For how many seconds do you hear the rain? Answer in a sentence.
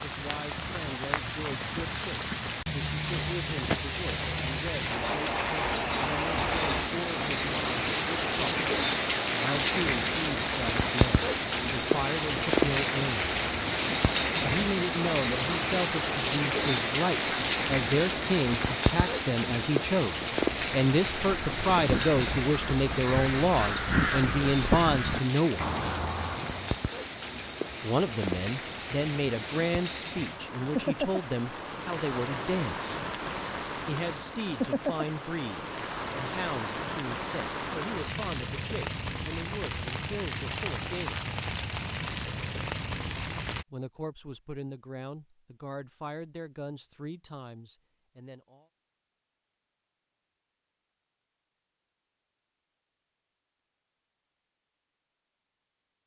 The rain can be heard for 44 seconds in total.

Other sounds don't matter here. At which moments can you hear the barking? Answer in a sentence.
The barking can't be heard in this clip.